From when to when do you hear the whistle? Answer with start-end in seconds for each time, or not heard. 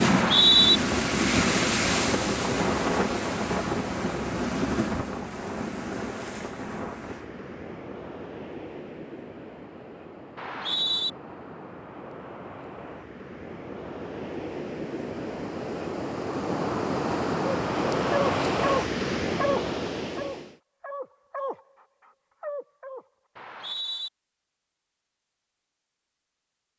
0.0-0.8, 10.3-11.1, 23.4-24.1.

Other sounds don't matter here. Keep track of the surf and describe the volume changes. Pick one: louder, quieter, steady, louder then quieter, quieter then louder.
quieter then louder.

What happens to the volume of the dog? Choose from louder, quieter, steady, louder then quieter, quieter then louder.
quieter.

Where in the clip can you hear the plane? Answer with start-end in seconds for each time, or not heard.
not heard.